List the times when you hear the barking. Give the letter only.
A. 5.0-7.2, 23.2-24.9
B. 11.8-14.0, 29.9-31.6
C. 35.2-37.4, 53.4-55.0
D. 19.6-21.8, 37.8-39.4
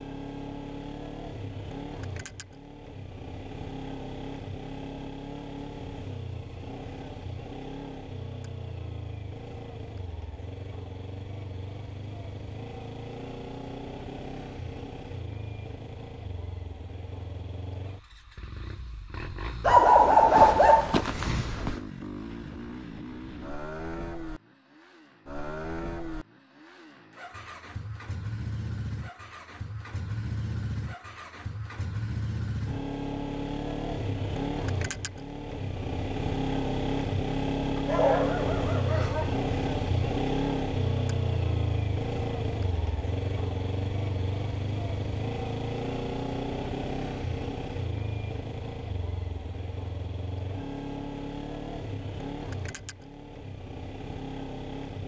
D.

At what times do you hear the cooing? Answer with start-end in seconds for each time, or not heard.
not heard.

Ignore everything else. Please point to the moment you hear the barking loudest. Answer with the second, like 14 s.
20 s.